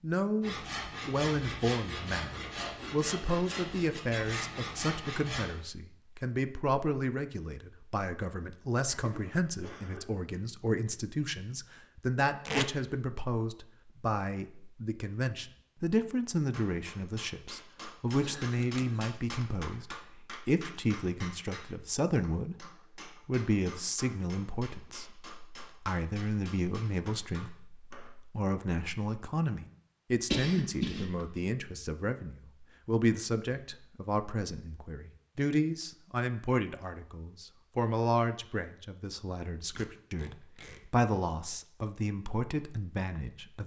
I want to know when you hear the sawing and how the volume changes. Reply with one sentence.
The sawing can be heard from 0.4 to 5.5 s, at a steady volume.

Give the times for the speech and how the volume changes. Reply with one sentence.
The speech can be heard from 0.0 to 43.6 s, at a steady volume.